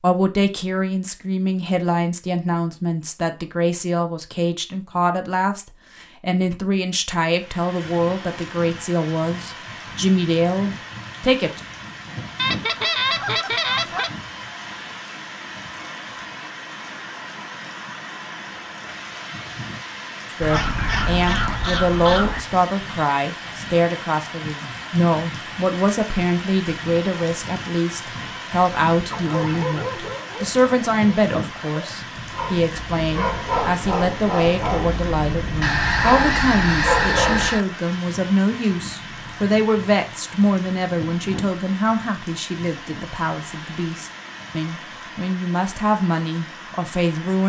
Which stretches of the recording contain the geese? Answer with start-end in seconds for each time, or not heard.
12.3-14.1, 20.4-22.4, 35.6-37.6.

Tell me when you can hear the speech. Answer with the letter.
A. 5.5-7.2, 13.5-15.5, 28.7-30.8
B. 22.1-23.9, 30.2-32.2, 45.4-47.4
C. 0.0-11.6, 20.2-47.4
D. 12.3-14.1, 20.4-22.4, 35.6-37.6
C.